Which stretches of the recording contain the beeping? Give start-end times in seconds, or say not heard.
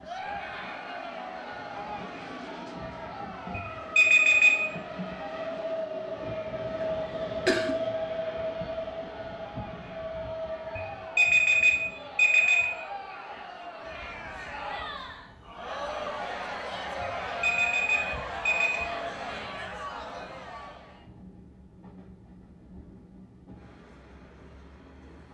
3.5-4.7, 10.8-12.7, 17.0-18.8.